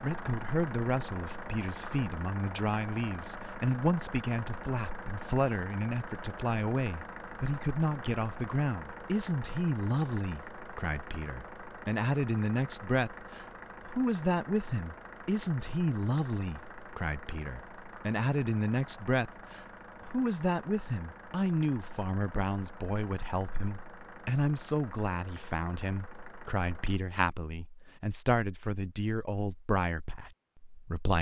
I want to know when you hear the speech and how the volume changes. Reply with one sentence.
The speech can be heard from 0.0 to 31.1 s, at a steady volume.